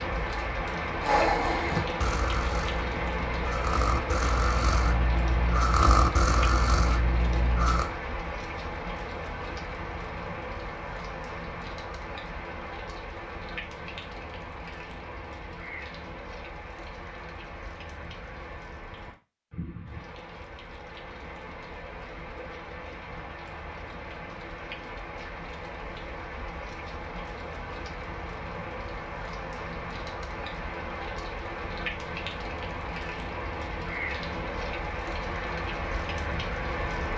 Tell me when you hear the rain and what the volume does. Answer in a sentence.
The rain can be heard from 0.0 to 37.1 s, getting quieter then louder.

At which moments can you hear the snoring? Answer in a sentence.
You can hear the snoring from 1.0 to 7.9 s.